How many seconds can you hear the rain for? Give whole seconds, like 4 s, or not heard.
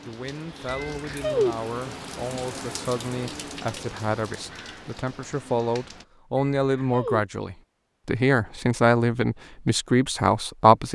6 s.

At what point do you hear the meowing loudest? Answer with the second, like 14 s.
1 s.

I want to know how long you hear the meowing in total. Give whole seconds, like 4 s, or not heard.
2 s.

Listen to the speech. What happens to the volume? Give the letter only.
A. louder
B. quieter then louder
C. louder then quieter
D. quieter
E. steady
A.